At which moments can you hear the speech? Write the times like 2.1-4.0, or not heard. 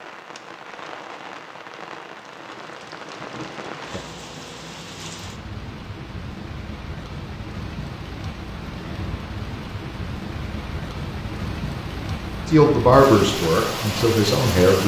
12.4-14.8.